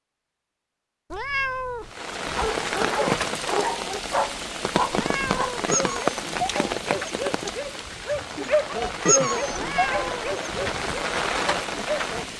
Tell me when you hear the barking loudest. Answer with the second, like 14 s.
9 s.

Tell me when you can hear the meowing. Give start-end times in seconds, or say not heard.
1.1-1.9, 4.9-5.7, 9.5-10.3.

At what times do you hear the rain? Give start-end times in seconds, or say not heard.
1.9-12.3.